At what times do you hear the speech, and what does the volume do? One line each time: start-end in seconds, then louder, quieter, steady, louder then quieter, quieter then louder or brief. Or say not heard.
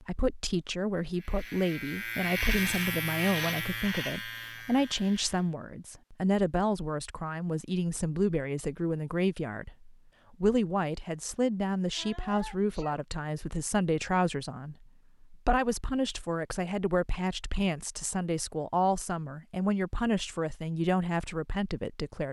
0.0-22.2 steady.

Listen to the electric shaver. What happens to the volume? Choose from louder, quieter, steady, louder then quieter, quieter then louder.
louder then quieter.